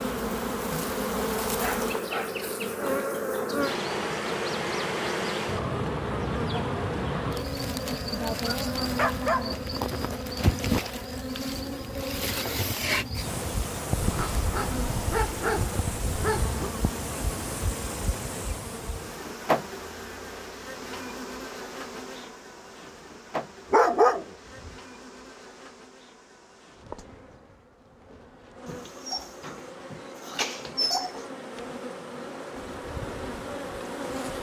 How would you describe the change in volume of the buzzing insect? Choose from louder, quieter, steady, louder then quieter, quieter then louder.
quieter.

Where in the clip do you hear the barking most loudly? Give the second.
24 s.